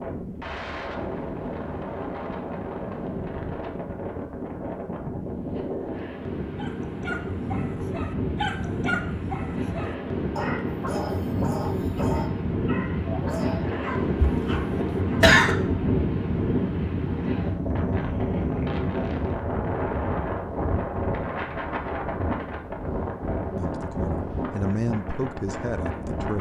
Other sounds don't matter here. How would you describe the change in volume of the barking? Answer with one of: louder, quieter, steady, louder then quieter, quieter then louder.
steady.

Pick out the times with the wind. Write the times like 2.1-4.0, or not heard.
0.0-26.3.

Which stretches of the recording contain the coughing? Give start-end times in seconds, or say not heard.
14.2-15.6.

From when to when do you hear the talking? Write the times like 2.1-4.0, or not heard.
23.6-26.3.